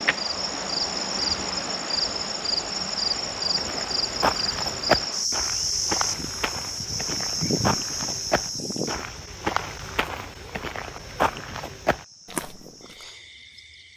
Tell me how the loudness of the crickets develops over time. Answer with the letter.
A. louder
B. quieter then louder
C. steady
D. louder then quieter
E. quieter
E.